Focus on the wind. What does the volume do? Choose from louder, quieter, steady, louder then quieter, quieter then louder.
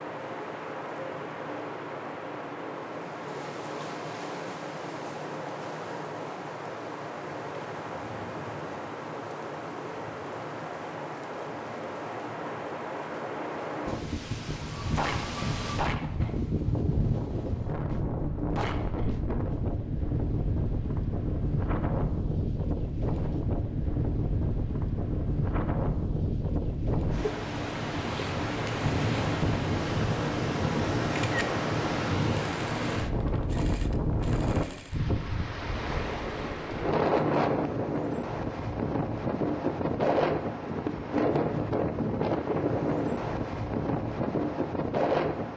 louder.